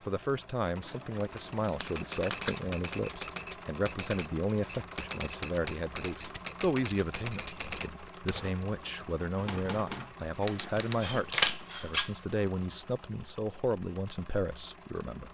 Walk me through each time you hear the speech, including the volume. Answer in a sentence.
The speech can be heard from 0.1 to 15.2 s, at a steady volume.